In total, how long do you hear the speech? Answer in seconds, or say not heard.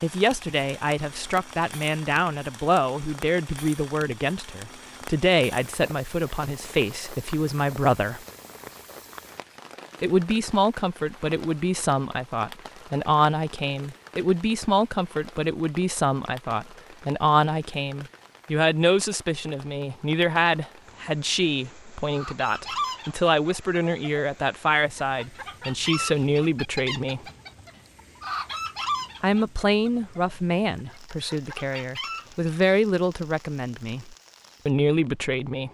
32 s.